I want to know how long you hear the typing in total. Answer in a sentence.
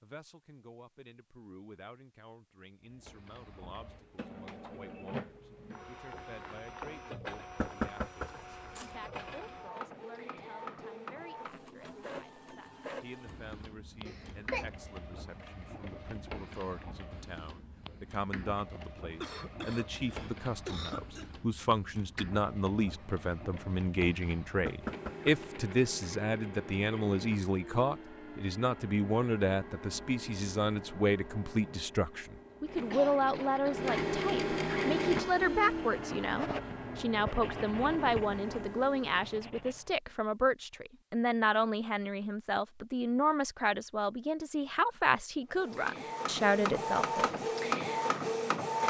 You can't hear the typing here.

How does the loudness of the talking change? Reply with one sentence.
The loudness of the talking goes up.